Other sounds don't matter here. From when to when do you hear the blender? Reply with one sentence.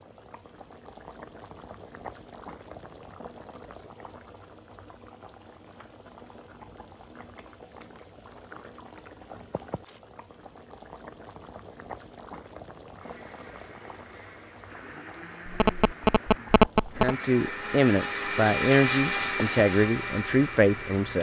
The blender can be heard from 13.0 to 21.1 s.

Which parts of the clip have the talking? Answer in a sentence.
You can hear the talking from 17.0 to 21.1 s.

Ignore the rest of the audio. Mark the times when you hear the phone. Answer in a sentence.
You can hear the phone from 15.4 to 17.1 s.